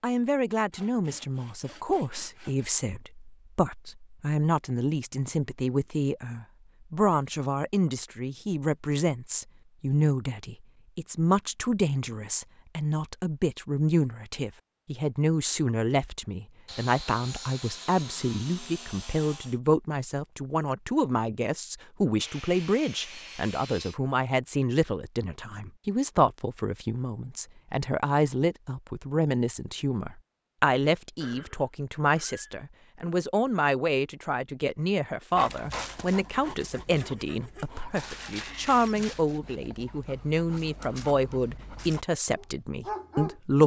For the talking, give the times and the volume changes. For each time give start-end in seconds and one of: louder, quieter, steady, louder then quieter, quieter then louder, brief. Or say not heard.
0.0-43.6 steady.